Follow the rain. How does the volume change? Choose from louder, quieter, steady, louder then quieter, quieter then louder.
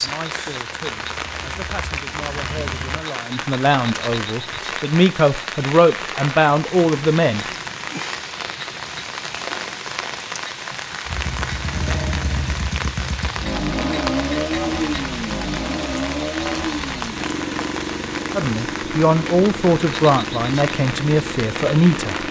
steady.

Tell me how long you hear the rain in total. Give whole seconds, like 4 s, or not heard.
22 s.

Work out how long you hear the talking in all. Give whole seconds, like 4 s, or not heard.
11 s.